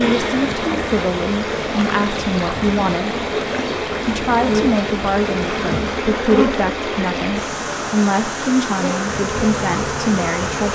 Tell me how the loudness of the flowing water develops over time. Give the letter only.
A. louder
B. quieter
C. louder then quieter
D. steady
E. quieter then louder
D.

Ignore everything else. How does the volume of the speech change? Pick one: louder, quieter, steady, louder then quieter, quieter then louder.
steady.